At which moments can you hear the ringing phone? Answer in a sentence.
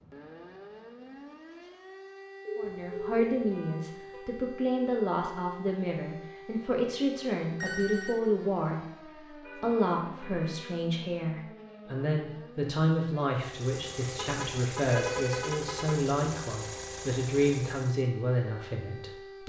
The ringing phone can be heard from 2.5 to 3.3 s, from 7.6 to 8.2 s and from 14.9 to 15.5 s.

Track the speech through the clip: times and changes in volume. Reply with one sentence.
The speech can be heard from 2.5 to 19.4 s, at a steady volume.